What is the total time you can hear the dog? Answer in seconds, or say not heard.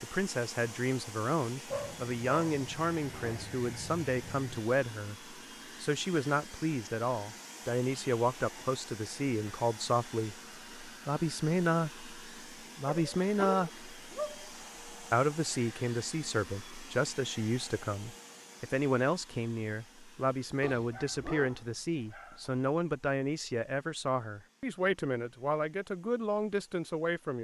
7 s.